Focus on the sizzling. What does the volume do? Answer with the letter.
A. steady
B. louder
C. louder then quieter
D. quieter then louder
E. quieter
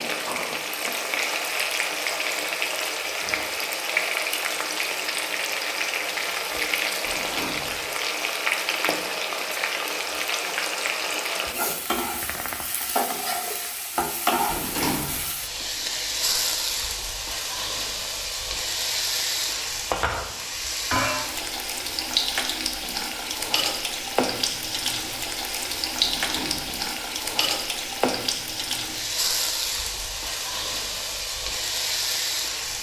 A.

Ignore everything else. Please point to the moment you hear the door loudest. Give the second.
15 s.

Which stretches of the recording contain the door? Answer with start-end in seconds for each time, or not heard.
7.0-7.9, 14.4-15.3, 26.0-26.9.